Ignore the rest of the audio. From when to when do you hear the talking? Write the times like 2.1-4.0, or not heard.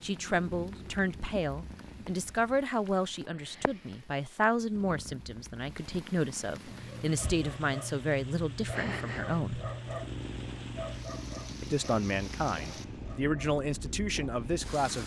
0.0-9.6, 11.6-15.0.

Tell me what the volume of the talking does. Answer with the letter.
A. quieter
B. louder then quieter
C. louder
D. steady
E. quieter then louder
D.